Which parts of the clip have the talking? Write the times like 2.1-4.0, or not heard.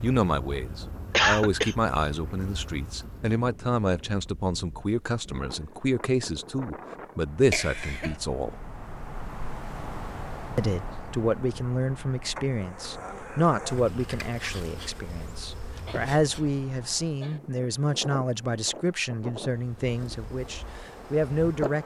0.0-8.7, 10.6-21.8.